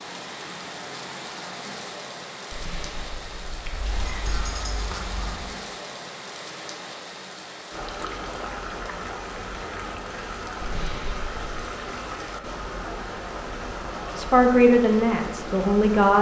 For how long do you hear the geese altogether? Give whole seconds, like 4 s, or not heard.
2 s.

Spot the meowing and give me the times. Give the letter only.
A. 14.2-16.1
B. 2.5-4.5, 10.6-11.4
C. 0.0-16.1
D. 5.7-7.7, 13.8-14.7
B.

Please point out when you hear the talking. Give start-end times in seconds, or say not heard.
14.2-16.1.